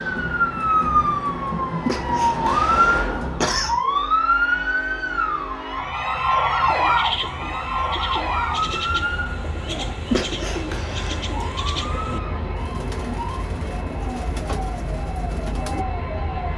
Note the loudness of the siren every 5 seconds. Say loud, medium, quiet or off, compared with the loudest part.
loud, loud, quiet, quiet.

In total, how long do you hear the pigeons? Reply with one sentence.
You can hear the pigeons for 9 seconds altogether.